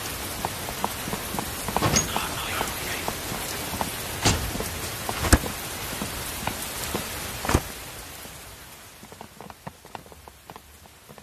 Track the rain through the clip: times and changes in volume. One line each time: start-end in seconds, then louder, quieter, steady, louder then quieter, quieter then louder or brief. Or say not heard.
0.0-11.1 quieter.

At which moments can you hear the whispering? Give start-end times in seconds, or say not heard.
2.0-3.1.